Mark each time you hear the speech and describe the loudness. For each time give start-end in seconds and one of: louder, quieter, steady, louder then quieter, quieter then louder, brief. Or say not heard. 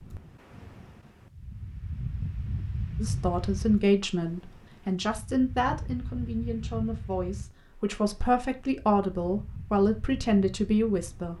3.0-11.3 quieter then louder.